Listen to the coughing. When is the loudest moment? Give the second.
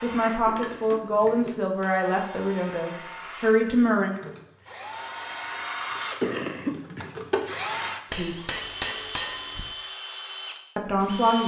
6 s.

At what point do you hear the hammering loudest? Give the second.
9 s.